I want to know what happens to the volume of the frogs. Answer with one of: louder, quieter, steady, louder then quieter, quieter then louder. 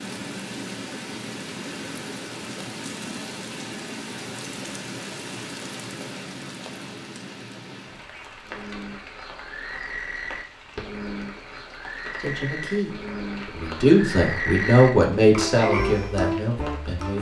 louder.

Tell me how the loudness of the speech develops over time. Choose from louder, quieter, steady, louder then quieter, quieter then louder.
louder then quieter.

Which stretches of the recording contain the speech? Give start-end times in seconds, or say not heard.
12.2-17.1.